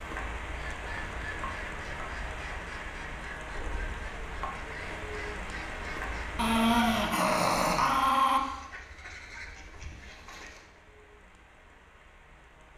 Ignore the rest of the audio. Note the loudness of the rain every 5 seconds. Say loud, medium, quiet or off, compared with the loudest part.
loud, loud, quiet.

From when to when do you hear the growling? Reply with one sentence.
You can hear the growling from 6.3 to 8.4 s.